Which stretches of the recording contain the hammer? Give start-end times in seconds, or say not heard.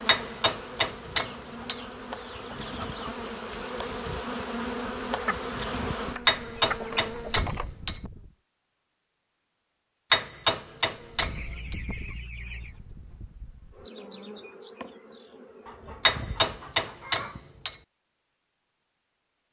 0.1-1.8, 6.2-8.0, 10.1-11.8, 16.1-17.8.